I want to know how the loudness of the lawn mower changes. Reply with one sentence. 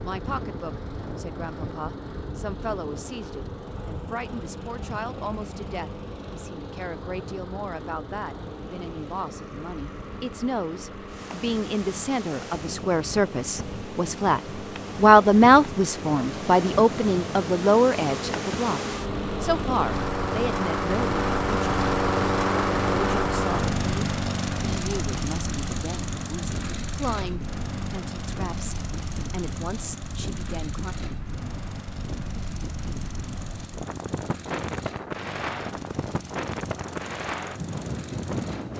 The loudness of the lawn mower goes up, then down.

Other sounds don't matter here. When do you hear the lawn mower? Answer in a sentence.
The lawn mower can be heard from 0.0 to 38.7 s.